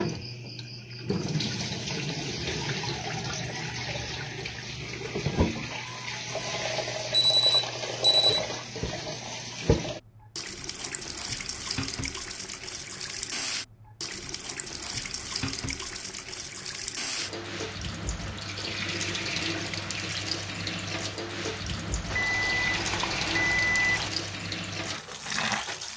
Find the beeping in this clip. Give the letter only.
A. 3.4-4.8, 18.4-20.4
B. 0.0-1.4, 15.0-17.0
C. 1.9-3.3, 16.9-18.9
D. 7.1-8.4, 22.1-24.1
D.